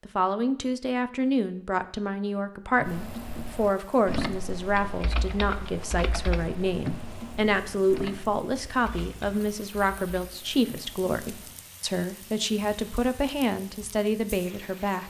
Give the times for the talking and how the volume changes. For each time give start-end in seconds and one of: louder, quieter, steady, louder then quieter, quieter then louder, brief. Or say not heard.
0.1-15.0 steady.